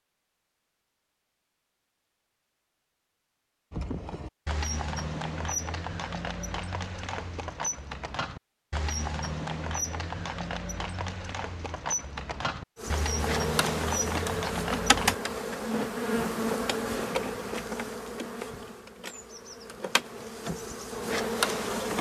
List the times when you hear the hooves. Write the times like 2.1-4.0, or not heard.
3.7-15.2.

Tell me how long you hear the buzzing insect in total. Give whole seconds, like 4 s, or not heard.
9 s.